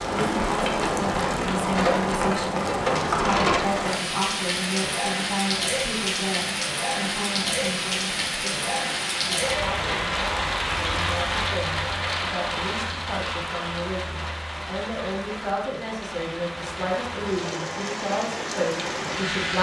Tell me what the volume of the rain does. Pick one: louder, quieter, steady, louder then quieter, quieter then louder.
quieter.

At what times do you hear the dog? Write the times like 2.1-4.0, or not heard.
not heard.